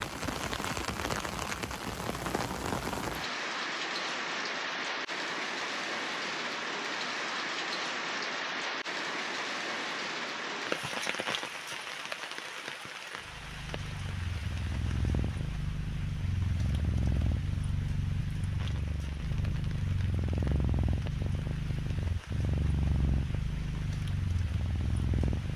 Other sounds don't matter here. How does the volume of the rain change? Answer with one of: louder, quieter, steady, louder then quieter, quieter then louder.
quieter.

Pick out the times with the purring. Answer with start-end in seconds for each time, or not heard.
13.2-25.5.